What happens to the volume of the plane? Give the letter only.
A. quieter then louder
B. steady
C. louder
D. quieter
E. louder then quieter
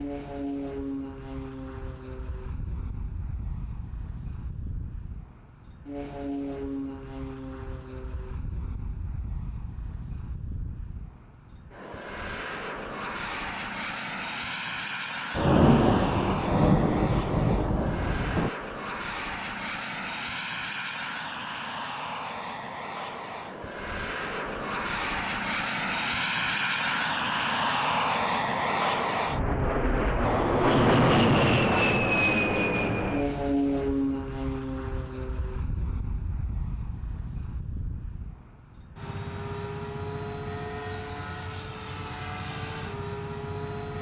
E.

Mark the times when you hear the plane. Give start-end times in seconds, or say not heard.
0.0-43.9.